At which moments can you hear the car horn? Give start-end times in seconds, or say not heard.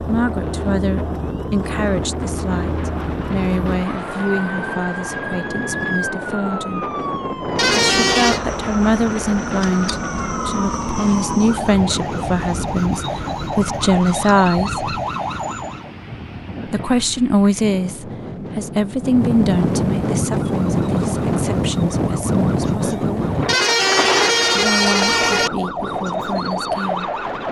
7.5-8.4, 23.4-25.5.